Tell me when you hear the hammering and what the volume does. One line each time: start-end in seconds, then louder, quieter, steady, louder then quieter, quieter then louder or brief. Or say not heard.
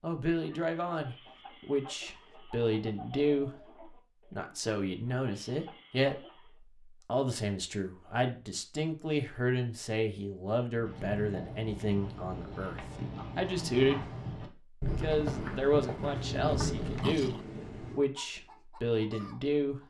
not heard.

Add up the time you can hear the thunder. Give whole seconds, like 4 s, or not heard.
3 s.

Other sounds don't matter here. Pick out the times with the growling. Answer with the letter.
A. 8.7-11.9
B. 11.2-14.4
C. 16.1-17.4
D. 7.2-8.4
C.